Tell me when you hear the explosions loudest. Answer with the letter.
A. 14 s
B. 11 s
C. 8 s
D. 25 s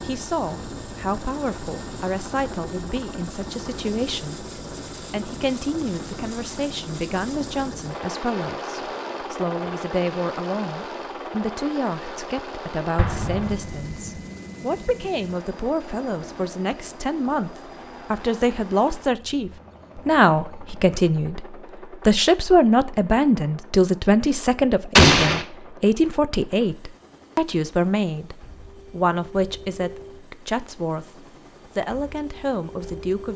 D.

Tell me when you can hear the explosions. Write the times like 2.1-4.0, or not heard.
12.9-13.9, 24.9-25.4.